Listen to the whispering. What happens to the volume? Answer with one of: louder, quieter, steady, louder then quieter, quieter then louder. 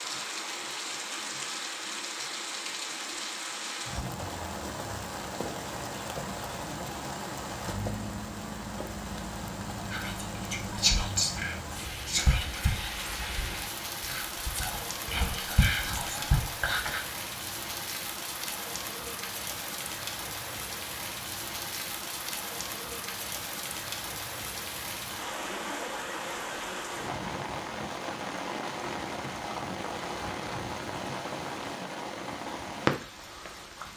quieter then louder.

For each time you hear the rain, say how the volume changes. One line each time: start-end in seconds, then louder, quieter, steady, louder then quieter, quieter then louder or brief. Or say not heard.
0.0-33.9 steady.